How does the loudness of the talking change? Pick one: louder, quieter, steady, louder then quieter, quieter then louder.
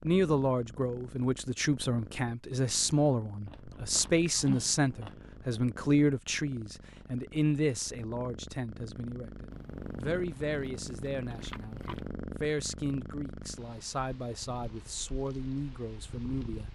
quieter.